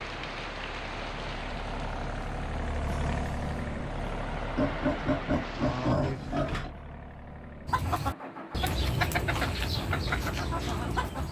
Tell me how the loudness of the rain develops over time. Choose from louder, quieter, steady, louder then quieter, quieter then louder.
quieter then louder.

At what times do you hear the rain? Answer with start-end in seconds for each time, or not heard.
0.0-6.0.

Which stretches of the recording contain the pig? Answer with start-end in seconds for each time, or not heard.
4.5-6.8.